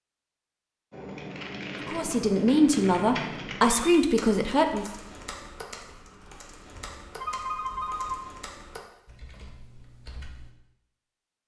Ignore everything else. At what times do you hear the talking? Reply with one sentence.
The talking can be heard from 1.9 to 4.8 s.